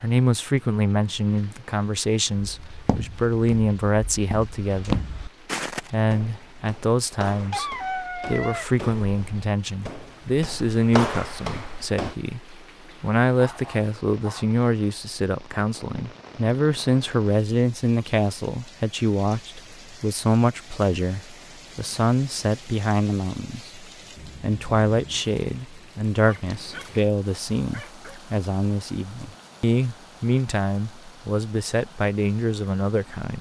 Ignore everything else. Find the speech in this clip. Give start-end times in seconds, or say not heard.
0.0-5.1, 5.9-33.3.